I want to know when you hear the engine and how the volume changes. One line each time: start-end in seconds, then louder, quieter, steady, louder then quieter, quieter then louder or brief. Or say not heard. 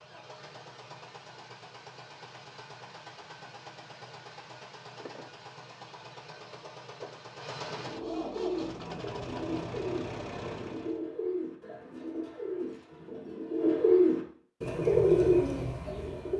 0.0-11.0 louder.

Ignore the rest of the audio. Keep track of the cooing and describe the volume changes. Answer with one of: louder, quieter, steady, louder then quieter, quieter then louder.
louder.